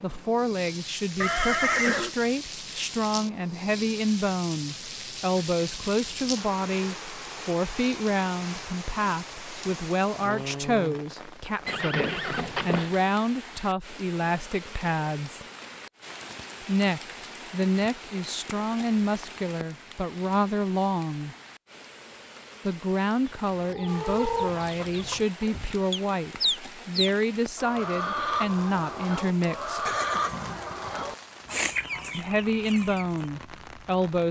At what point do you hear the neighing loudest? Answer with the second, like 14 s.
2 s.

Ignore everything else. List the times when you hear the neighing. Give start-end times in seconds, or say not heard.
1.2-2.1, 11.7-13.0, 29.9-31.1.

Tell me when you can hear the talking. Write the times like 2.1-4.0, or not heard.
0.0-15.4, 16.6-21.4, 22.6-29.9, 32.1-34.2.